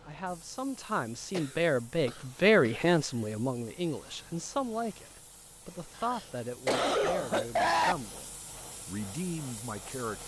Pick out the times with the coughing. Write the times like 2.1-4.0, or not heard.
1.3-2.8, 6.0-8.0.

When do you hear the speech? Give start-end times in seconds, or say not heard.
0.1-8.2, 8.8-10.2.